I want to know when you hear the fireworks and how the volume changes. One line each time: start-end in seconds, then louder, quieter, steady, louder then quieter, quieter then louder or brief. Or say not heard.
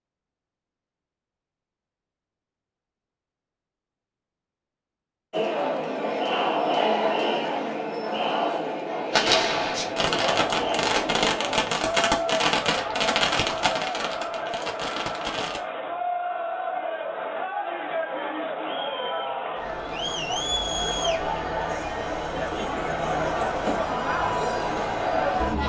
9.1-15.6 quieter.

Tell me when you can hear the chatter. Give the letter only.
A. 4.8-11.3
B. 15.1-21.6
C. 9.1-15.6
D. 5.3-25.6
D.